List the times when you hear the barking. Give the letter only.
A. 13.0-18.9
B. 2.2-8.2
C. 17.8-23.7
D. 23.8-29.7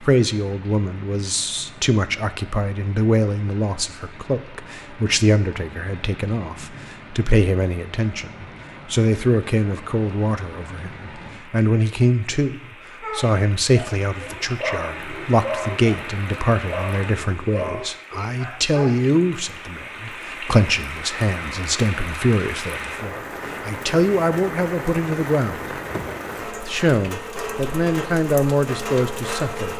A.